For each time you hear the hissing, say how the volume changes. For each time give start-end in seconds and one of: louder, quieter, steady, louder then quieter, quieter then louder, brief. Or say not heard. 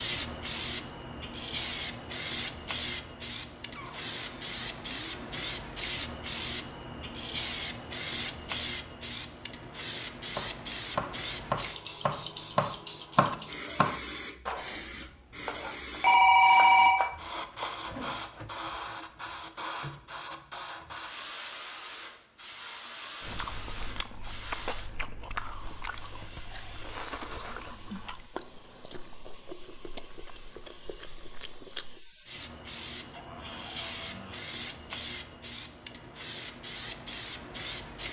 0.0-38.0 quieter then louder.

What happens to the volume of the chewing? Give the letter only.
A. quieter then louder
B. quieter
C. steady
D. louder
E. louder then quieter
B.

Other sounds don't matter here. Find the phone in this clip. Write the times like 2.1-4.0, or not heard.
16.0-16.9.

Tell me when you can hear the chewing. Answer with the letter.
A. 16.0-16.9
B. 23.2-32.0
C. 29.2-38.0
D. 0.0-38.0
B.